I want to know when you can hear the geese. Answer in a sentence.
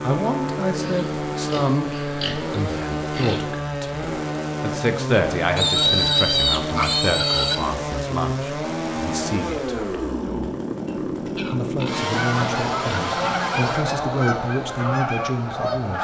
You can hear the geese from 12.1 to 15.9 s.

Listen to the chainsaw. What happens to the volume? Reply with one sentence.
The loudness of the chainsaw stays about the same.